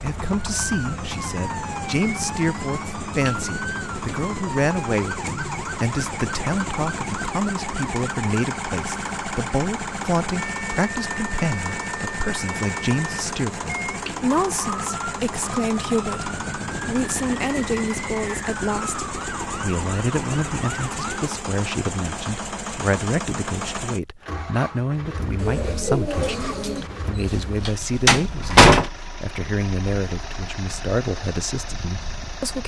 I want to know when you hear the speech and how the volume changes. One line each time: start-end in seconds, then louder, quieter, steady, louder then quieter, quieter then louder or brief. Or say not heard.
0.0-32.6 steady.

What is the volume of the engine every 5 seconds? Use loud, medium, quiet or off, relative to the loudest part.
loud, loud, loud, loud, loud, medium, medium.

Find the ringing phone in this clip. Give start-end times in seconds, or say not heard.
not heard.